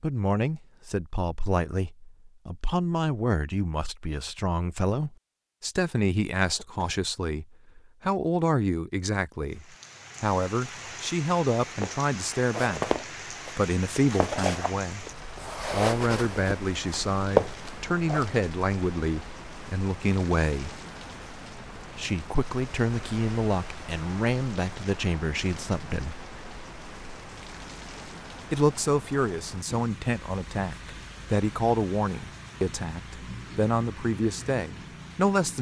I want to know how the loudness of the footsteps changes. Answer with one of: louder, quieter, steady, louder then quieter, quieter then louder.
quieter then louder.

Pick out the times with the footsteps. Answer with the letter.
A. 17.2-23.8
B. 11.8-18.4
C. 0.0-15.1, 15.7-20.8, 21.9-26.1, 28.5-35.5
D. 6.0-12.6
B.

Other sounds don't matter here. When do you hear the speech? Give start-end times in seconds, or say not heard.
0.0-15.1, 15.7-20.8, 21.9-26.1, 28.5-35.5.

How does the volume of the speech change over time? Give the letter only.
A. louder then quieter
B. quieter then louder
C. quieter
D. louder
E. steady
E.